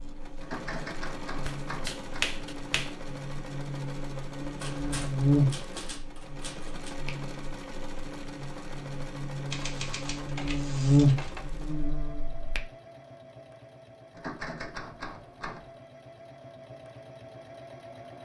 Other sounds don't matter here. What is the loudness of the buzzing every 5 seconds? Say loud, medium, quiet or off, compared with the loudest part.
quiet, medium, loud, off.